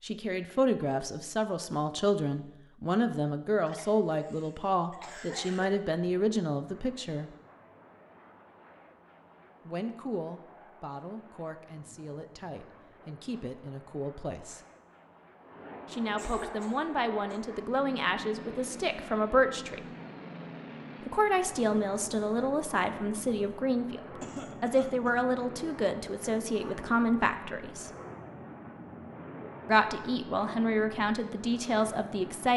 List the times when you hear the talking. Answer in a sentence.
You can hear the talking from 0.0 to 7.3 s, from 9.7 to 14.6 s, from 15.9 to 19.9 s, from 21.0 to 27.9 s and from 29.6 to 32.5 s.